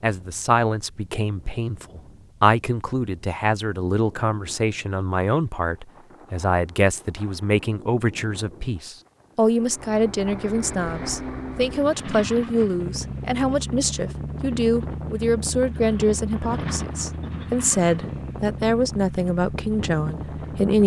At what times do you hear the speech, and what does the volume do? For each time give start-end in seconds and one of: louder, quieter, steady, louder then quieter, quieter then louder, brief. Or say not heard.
0.0-20.8 steady.